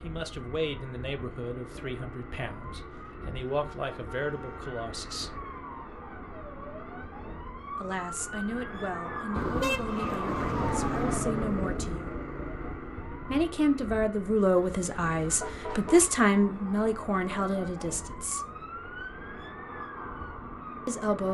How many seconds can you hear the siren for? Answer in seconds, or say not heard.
21 s.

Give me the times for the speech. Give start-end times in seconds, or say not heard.
0.0-5.4, 7.8-12.2, 13.3-18.4, 20.9-21.3.